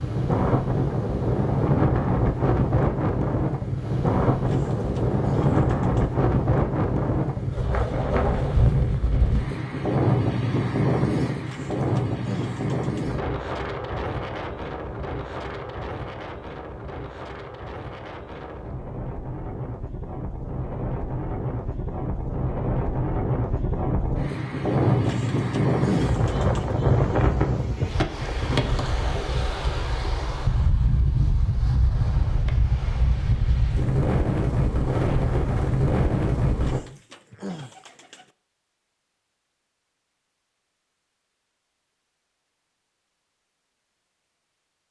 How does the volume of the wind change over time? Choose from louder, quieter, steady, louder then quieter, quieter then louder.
quieter then louder.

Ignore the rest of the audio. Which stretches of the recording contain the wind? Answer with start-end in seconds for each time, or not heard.
0.0-36.8.